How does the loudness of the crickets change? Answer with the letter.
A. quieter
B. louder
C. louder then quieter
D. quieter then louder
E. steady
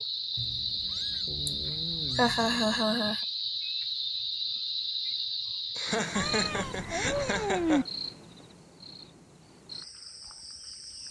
A.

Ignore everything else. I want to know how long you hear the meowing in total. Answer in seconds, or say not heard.
4 s.